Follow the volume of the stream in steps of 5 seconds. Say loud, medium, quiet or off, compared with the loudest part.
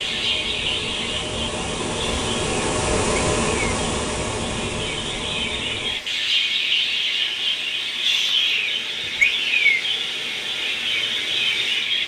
loud, medium, medium.